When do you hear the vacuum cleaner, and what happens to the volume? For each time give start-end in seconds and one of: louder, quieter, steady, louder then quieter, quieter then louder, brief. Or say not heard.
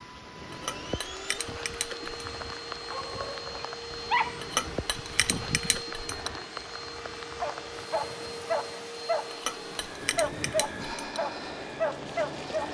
0.0-12.6 steady.